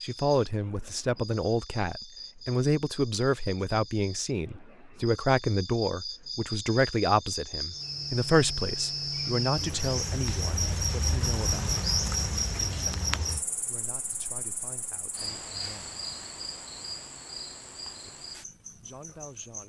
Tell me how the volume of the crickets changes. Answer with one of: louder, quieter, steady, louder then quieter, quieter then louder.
louder then quieter.